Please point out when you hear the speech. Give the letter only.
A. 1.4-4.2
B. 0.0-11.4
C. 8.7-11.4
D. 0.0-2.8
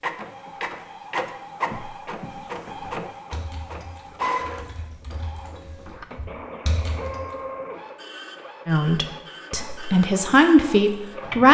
C.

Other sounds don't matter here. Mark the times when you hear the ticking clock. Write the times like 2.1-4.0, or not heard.
not heard.